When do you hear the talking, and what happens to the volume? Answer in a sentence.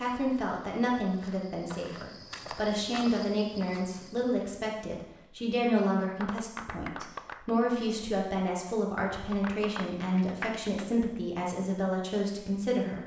The talking can be heard from 0.0 to 13.0 s, at a steady volume.